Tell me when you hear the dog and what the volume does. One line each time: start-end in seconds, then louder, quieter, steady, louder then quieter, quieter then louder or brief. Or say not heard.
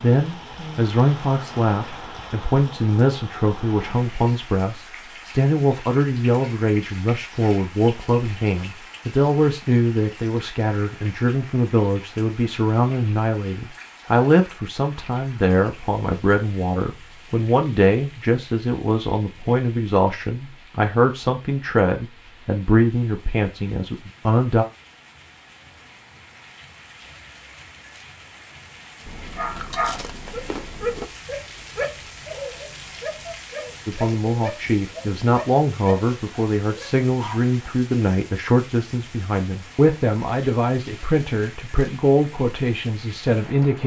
29.4-37.7 quieter.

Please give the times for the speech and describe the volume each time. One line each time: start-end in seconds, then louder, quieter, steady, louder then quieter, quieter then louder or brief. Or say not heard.
0.0-24.6 steady
33.9-43.8 steady.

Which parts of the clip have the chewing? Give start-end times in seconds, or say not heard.
29.1-31.1.